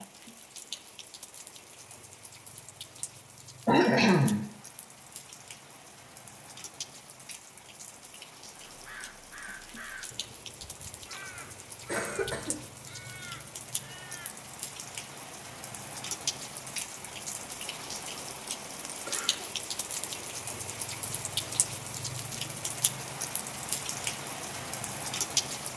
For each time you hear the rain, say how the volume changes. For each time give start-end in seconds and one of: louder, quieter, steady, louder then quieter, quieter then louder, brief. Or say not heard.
0.0-25.7 louder.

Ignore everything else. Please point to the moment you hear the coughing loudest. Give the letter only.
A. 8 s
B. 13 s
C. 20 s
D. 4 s
D.